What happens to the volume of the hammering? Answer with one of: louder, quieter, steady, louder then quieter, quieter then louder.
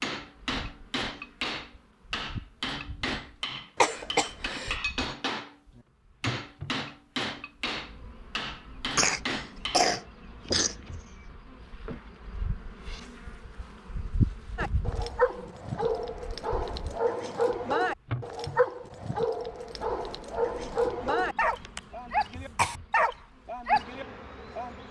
steady.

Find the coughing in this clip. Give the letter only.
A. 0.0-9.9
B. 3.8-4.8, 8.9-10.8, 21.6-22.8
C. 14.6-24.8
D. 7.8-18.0
B.